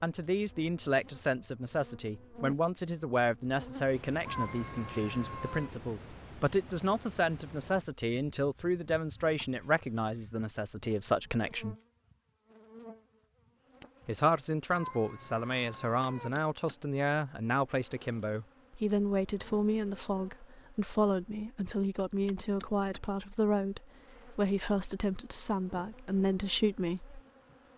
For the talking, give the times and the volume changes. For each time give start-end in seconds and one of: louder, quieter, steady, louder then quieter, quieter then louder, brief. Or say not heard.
0.0-11.8 steady
14.1-27.2 steady.